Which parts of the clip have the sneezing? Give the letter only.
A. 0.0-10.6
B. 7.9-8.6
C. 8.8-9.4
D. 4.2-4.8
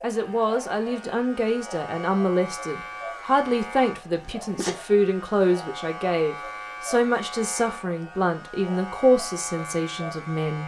D.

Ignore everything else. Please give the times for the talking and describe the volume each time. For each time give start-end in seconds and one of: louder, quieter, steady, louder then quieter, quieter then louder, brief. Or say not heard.
0.0-10.6 steady.